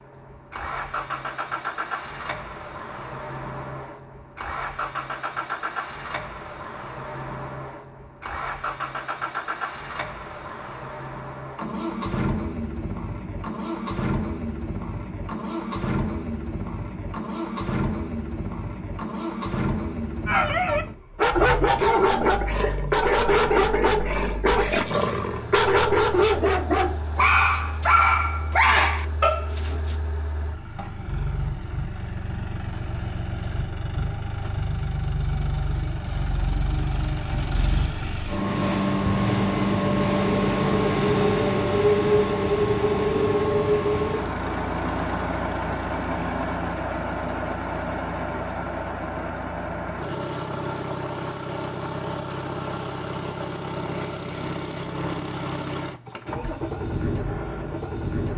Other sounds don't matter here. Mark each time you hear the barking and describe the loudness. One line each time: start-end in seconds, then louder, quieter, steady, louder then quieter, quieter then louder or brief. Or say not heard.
20.2-29.9 steady.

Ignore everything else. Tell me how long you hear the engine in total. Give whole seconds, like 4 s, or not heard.
58 s.